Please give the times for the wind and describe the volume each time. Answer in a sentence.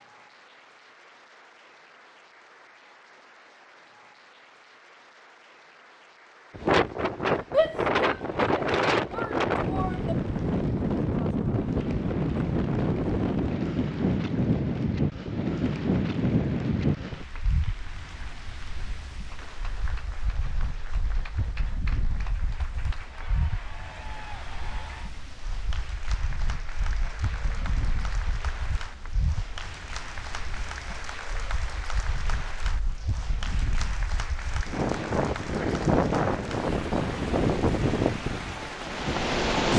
You can hear the wind from 6.5 to 39.7 s, getting quieter then louder.